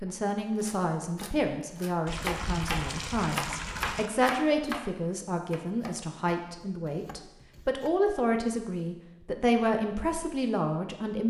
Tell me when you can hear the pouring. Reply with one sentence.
The pouring can be heard from 2.0 to 4.1 s.